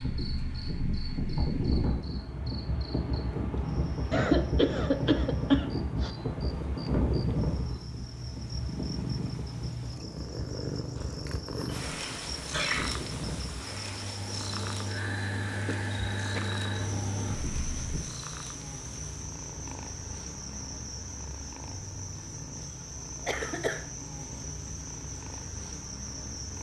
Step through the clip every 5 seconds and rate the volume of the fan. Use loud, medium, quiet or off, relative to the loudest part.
loud, loud, medium, loud, off, off.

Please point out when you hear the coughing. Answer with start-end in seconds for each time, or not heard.
4.1-6.1, 11.7-13.0, 23.2-23.8.